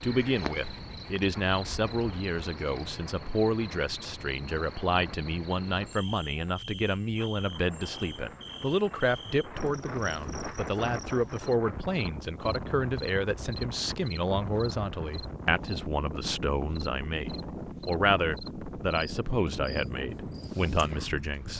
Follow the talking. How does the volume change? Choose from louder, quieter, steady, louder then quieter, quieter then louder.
steady.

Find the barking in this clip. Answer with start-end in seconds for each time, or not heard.
not heard.